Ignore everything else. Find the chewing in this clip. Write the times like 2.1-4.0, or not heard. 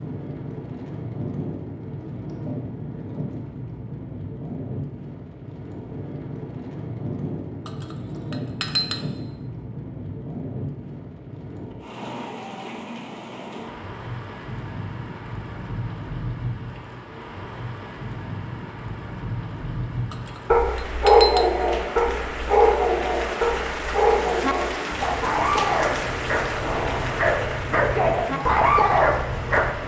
not heard.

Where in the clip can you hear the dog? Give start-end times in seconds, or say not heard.
20.5-29.8.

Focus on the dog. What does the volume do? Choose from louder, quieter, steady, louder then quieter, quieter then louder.
quieter then louder.